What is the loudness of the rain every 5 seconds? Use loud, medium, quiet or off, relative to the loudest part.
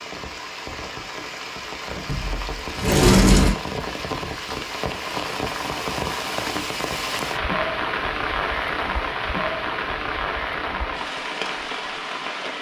medium, loud, loud.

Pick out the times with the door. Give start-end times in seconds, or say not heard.
2.0-3.5.